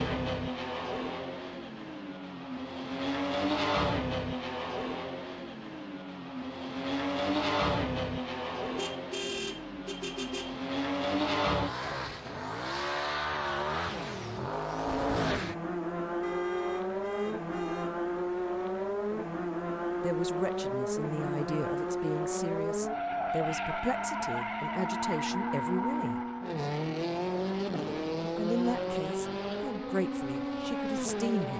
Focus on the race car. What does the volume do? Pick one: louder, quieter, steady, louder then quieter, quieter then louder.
steady.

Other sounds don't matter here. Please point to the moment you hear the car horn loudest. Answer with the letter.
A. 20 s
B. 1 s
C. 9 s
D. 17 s
C.